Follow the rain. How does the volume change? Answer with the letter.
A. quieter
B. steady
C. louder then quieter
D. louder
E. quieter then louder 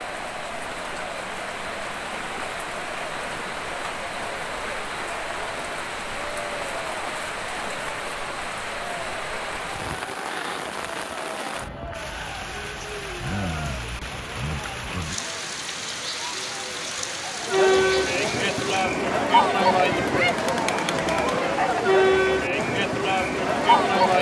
B.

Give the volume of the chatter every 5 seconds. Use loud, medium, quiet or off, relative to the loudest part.
quiet, quiet, quiet, loud, loud.